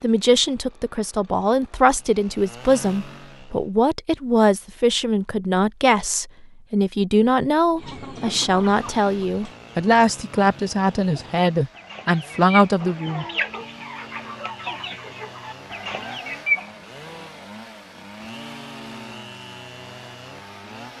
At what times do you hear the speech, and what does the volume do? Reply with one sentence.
The speech can be heard from 0.0 to 13.2 s, at a steady volume.